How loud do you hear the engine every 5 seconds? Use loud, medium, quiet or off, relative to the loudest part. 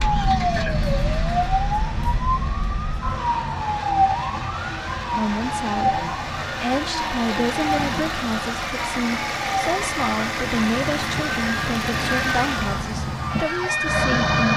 medium, loud, loud.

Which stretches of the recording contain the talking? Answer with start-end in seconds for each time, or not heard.
5.1-14.5.